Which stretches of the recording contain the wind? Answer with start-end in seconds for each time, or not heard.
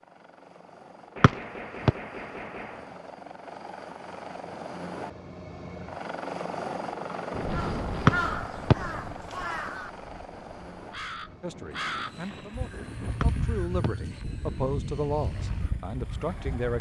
7.3-16.7.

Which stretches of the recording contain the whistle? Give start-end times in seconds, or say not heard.
1.2-1.9, 8.1-8.8, 13.2-13.9.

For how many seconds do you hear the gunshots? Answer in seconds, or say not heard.
2 s.